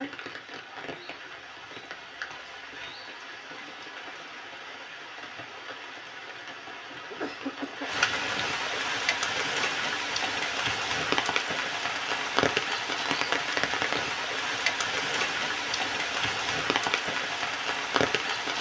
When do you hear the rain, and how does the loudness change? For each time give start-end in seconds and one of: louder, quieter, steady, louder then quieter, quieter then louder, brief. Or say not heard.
0.0-18.5 louder.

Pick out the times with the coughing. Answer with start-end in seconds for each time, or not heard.
6.5-7.9.